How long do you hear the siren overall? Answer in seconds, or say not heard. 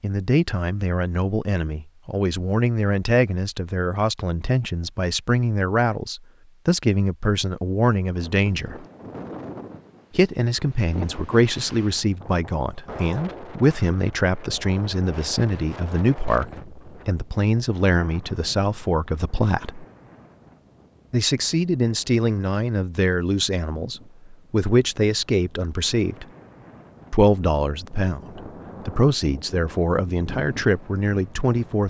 not heard.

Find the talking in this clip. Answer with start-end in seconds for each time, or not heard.
0.0-8.8, 10.1-19.9, 21.1-26.2, 27.1-31.8.